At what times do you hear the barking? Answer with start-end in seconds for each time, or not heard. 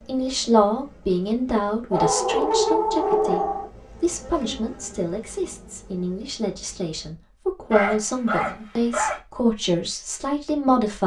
1.9-3.7, 7.7-9.2.